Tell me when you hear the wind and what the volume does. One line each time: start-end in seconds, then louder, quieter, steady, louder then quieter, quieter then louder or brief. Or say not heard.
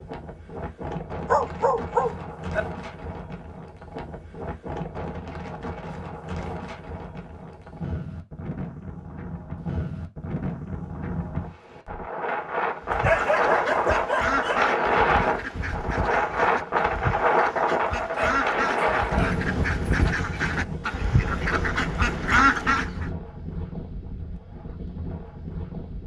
0.0-26.0 louder then quieter.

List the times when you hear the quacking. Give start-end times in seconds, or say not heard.
12.8-23.1.